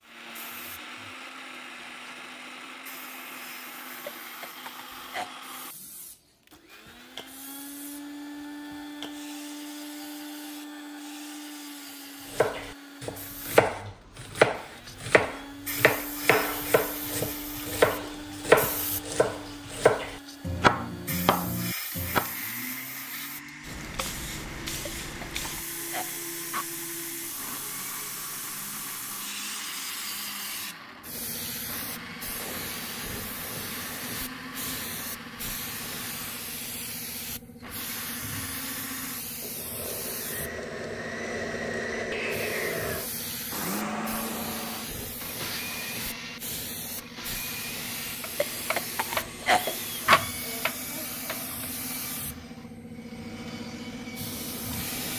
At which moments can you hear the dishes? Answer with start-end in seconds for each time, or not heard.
not heard.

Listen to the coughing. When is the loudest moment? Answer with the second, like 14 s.
50 s.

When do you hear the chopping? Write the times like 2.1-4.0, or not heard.
12.3-22.3, 48.2-51.7.